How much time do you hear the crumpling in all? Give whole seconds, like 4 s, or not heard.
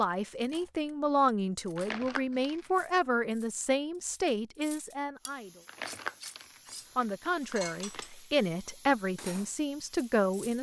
4 s.